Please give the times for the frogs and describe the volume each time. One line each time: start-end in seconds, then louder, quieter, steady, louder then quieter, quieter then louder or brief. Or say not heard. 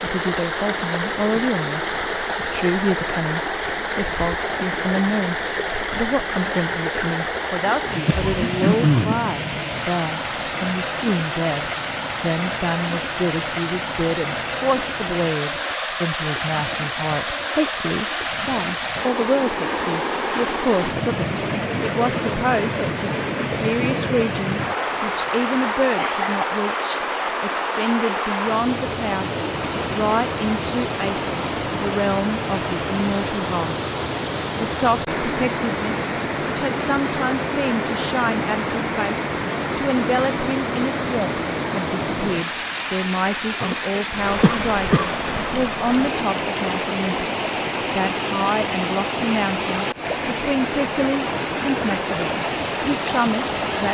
not heard.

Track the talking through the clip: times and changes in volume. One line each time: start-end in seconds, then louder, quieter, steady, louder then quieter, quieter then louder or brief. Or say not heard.
0.0-33.9 steady
34.5-53.9 steady.